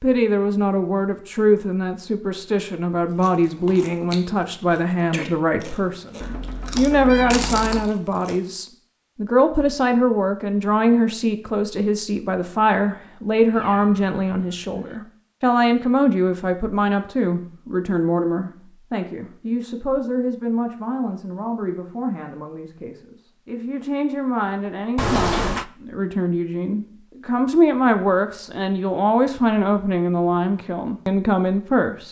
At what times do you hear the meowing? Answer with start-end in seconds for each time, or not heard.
6.2-8.0, 13.5-15.0, 24.9-25.6.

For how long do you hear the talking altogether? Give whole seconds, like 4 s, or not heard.
32 s.